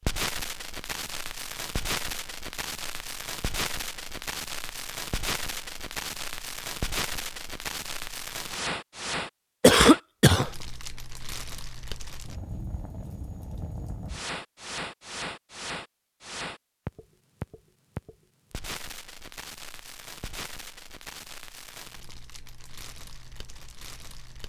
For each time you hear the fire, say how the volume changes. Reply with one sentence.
The fire can be heard from 0.0 to 24.4 s, getting quieter.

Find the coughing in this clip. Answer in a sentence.
You can hear the coughing from 9.6 to 10.5 s.